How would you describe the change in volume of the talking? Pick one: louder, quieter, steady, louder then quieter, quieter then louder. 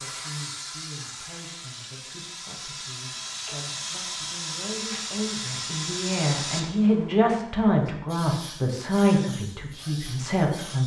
louder.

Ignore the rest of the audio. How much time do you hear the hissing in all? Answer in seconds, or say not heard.
11 s.